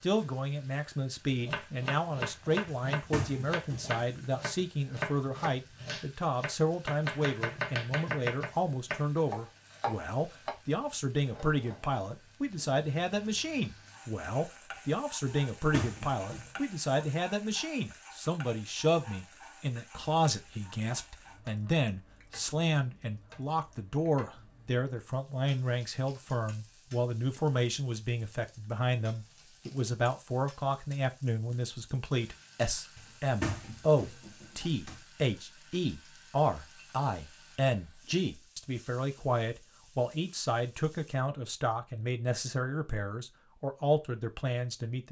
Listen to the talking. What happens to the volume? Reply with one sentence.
The volume of the talking stays about the same.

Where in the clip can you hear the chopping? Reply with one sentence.
The chopping can be heard from 1.3 to 10.6 s.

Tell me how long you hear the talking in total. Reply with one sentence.
You can hear the talking for 45 seconds altogether.